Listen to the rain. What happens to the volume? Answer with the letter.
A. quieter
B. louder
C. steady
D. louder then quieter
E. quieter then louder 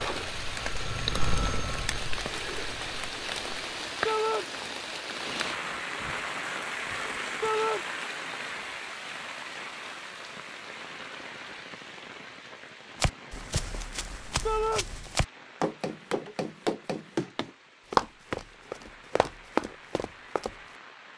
A.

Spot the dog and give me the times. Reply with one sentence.
The dog can't be heard in this clip.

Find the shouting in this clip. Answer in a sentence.
The shouting can be heard from 4.0 to 4.5 s, from 7.4 to 7.8 s and from 14.4 to 14.8 s.